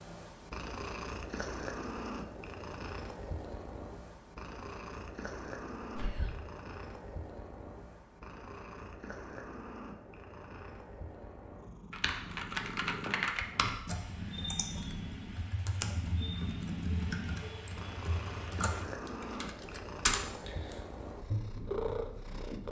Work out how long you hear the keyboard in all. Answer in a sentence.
You can hear the keyboard for 9 seconds altogether.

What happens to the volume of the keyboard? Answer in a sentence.
The volume of the keyboard goes down, then up.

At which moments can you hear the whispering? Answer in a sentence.
The whispering can be heard from 6.0 to 6.4 s.